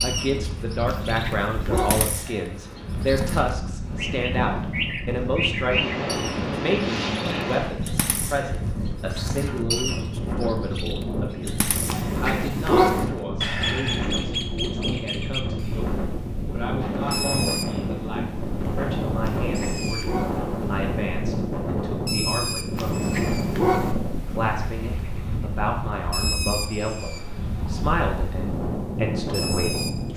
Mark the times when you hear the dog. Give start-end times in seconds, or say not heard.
0.8-2.0, 11.8-13.1, 19.2-20.4, 22.8-23.9.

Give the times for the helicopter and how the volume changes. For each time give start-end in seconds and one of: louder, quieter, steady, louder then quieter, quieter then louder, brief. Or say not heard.
not heard.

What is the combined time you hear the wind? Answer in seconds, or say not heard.
30 s.